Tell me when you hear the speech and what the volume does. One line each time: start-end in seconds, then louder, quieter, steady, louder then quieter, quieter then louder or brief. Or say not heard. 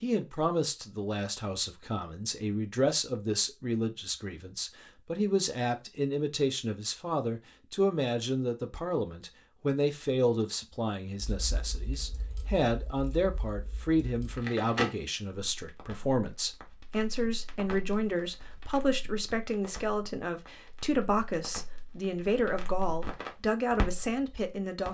0.0-24.8 steady.